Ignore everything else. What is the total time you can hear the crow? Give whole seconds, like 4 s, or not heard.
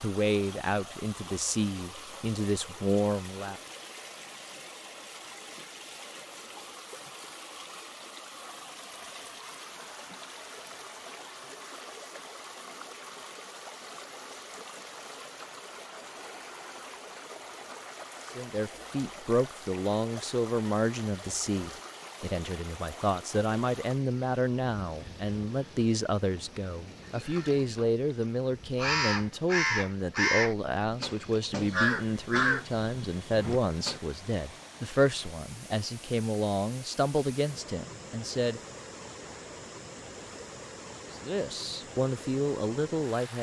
7 s.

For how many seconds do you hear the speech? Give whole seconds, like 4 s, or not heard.
26 s.